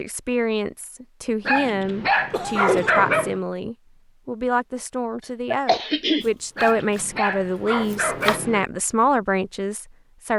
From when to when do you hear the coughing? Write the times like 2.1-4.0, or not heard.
2.3-3.0, 5.5-7.0.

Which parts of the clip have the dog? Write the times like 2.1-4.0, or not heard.
1.4-3.4, 6.5-8.7.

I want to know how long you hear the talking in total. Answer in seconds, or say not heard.
10 s.